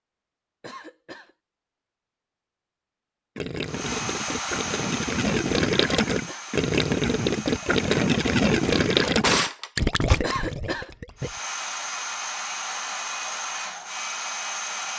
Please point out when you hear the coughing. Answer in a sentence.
The coughing can be heard from 0.6 to 1.4 s, from 6.0 to 6.5 s and from 10.2 to 10.9 s.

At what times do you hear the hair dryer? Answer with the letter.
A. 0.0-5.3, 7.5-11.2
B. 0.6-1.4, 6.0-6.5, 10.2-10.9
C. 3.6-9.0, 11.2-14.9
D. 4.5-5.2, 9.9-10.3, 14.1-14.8
C.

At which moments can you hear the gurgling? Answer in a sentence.
The gurgling can be heard from 3.4 to 11.4 s.